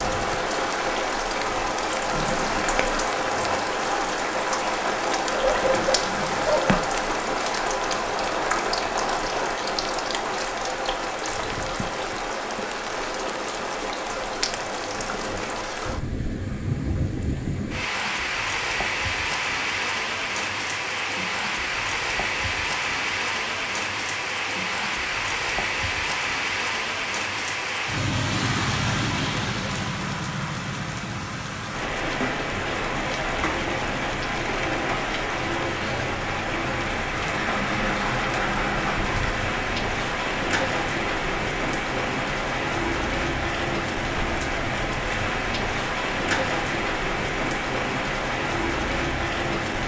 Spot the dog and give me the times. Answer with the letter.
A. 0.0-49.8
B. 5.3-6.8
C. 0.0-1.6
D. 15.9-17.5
B.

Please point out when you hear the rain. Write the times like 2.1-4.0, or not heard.
0.0-49.8.